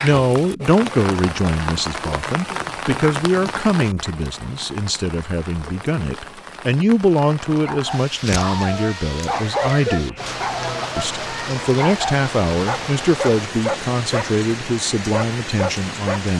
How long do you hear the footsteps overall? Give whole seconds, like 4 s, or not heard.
not heard.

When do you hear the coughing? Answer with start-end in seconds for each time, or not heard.
0.8-2.1, 9.3-10.9.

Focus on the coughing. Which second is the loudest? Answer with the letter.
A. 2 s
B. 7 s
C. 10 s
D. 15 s
C.